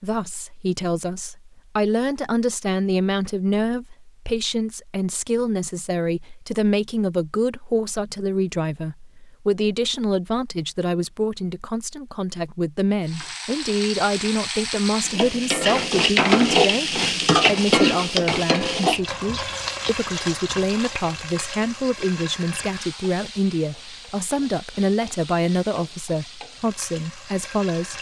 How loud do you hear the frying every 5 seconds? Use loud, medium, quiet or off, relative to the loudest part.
off, off, medium, loud, quiet, quiet.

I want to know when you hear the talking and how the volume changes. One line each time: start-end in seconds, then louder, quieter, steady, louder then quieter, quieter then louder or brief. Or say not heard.
0.0-27.9 steady.